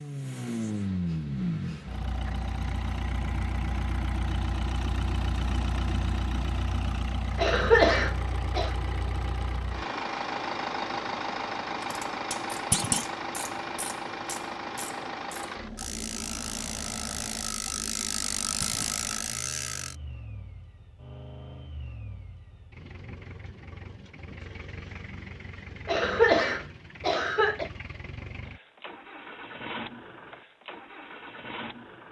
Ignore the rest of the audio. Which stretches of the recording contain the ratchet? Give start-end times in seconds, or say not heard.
11.7-19.9.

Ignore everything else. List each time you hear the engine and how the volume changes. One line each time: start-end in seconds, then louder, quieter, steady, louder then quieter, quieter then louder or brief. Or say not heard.
0.0-32.0 quieter.